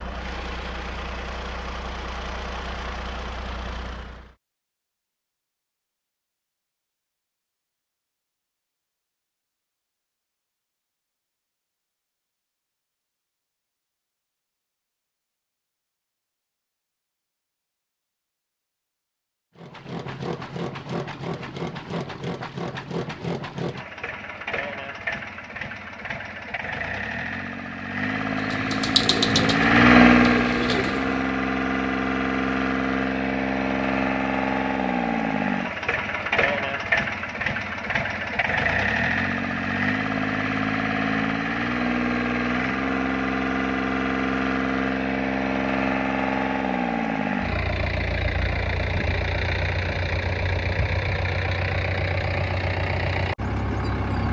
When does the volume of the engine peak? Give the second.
30 s.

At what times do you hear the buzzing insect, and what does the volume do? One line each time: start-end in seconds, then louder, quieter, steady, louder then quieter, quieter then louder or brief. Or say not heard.
not heard.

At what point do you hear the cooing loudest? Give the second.
29 s.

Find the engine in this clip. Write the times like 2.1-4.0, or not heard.
0.0-4.3, 19.6-54.2.